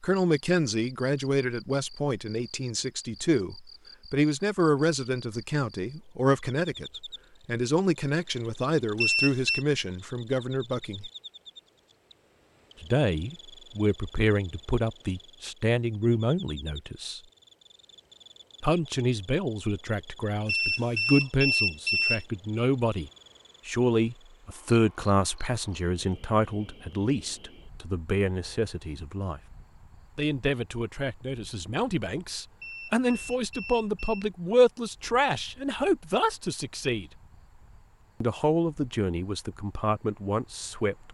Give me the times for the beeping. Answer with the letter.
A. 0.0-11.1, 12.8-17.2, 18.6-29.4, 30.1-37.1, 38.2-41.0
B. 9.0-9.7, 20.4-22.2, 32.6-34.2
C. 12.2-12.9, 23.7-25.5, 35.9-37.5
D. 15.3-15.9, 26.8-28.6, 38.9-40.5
B.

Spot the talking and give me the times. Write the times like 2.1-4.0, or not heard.
0.0-11.1, 12.8-17.2, 18.6-29.4, 30.1-37.1, 38.2-41.0.